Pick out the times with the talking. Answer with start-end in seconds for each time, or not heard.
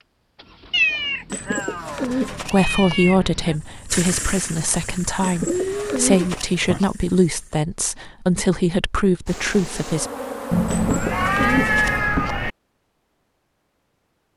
2.3-10.1.